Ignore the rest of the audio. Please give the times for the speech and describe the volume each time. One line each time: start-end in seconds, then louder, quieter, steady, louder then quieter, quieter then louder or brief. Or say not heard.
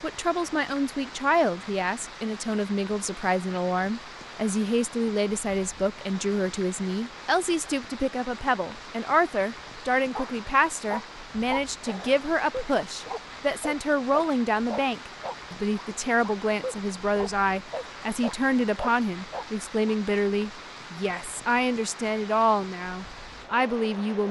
0.0-24.2 steady.